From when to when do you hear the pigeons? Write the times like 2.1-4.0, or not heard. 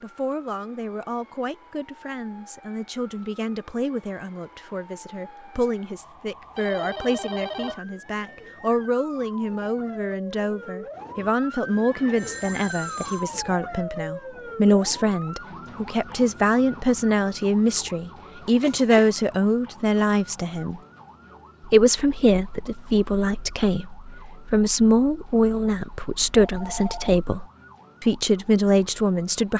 not heard.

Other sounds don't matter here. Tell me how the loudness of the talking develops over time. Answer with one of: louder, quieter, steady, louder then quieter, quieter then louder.
louder.